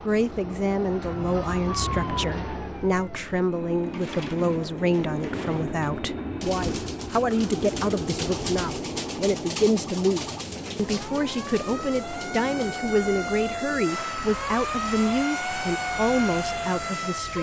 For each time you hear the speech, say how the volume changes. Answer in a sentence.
The speech can be heard from 0.1 to 17.3 s, at a steady volume.